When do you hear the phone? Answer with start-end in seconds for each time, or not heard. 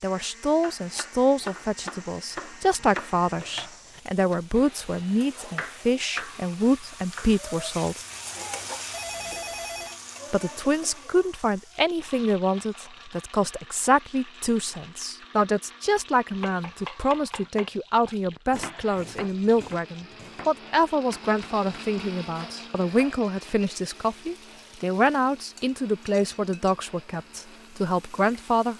8.9-10.0.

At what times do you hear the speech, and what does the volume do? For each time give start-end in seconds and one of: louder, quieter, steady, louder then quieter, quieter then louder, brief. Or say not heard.
0.0-8.1 steady
10.3-28.7 steady.